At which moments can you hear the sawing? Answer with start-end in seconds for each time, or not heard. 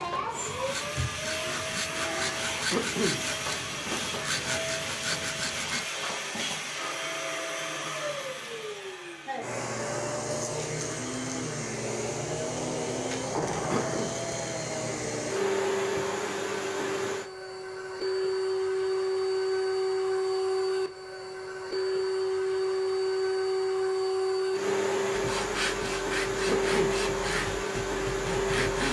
0.0-5.8, 25.1-28.8.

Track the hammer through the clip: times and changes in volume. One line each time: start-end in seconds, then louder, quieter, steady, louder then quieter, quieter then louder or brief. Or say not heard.
not heard.